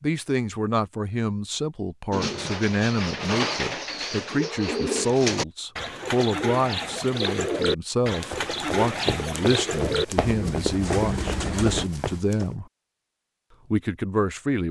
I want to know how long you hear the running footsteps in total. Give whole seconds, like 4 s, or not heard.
4 s.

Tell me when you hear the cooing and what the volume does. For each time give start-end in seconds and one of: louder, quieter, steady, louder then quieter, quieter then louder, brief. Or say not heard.
2.1-11.8 steady.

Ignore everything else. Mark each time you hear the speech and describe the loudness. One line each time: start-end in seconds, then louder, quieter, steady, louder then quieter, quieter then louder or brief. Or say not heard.
0.0-12.7 steady
13.7-14.6 brief.